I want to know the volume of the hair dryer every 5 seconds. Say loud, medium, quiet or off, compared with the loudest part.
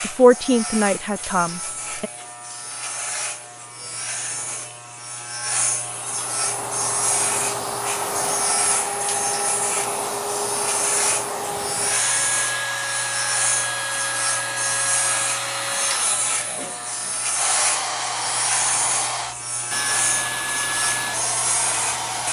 off, loud, loud, loud, loud.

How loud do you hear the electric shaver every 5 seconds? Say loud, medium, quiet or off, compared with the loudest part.
medium, loud, loud, loud, loud.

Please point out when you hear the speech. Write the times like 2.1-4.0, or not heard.
0.0-2.1.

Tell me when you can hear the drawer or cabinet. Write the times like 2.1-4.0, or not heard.
not heard.